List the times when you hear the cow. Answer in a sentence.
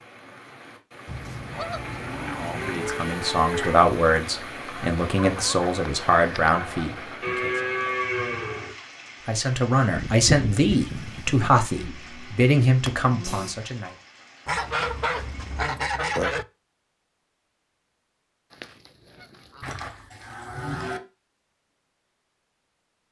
You can hear the cow from 1.5 to 3.9 s, from 7.2 to 8.8 s, from 11.7 to 13.5 s and from 19.6 to 21.0 s.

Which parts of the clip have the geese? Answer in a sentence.
The geese can be heard from 1.1 to 3.0 s, from 4.8 to 7.2 s, from 9.9 to 11.7 s, from 14.4 to 16.4 s and from 18.5 to 19.9 s.